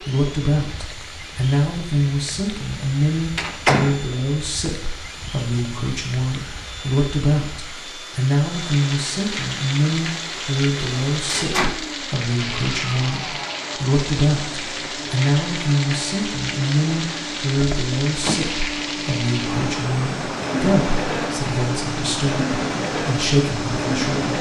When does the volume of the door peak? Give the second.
4 s.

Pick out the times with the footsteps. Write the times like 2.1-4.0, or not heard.
not heard.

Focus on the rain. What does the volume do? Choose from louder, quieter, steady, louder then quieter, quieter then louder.
louder.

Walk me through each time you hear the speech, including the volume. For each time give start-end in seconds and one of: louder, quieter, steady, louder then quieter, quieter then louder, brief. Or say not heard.
0.0-24.3 steady.